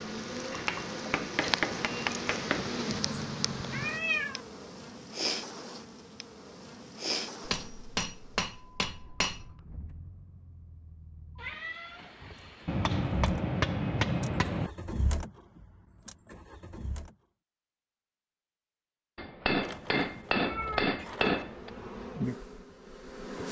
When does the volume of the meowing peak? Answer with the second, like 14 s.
4 s.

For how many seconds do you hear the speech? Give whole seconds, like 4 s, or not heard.
not heard.